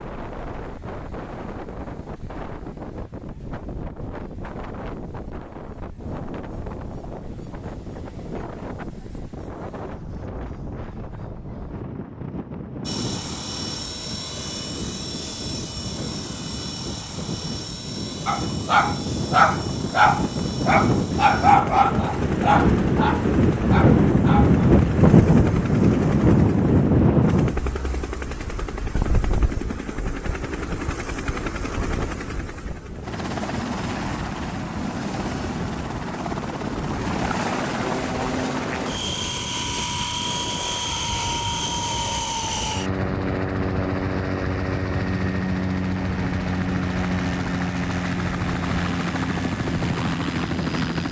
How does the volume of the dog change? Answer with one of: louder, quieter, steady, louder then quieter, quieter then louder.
quieter.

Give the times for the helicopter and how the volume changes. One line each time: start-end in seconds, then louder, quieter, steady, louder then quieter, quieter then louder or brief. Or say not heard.
12.8-51.0 louder.